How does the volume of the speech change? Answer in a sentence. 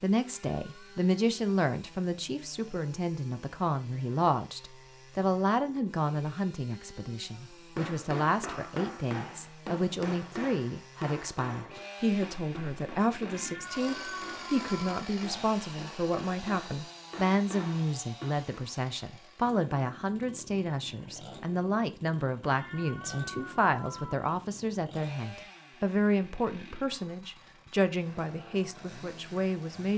The loudness of the speech stays about the same.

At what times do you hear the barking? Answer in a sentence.
You can't hear the barking here.